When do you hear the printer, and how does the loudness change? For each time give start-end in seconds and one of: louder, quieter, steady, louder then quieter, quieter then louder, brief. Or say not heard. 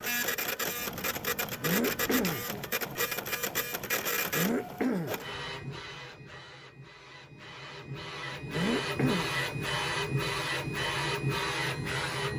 0.0-12.3 quieter then louder.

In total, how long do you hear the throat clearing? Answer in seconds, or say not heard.
3 s.